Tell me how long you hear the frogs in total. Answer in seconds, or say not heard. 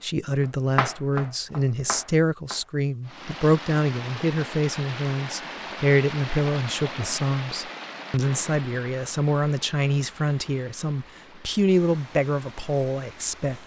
not heard.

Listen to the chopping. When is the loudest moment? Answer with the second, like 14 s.
1 s.